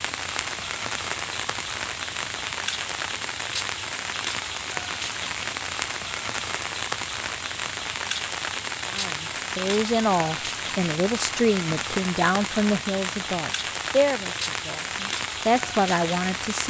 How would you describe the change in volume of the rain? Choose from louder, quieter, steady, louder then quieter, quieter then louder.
steady.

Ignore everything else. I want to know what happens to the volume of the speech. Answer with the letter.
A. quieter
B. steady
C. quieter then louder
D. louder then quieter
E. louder
B.